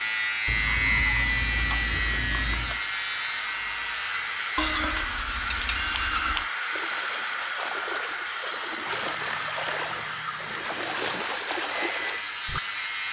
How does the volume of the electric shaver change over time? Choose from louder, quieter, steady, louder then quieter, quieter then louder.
quieter then louder.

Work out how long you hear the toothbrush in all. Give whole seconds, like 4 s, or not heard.
7 s.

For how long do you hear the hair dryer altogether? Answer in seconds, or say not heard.
13 s.